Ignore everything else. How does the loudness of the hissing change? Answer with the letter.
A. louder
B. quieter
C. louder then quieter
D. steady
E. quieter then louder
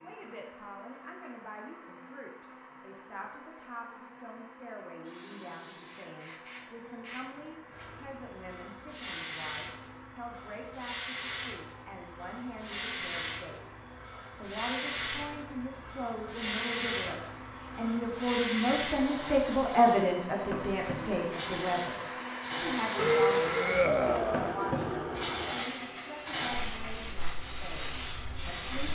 A.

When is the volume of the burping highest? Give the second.
23 s.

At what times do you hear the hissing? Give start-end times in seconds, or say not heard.
5.0-28.9.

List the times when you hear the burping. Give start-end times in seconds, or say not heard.
22.9-24.6.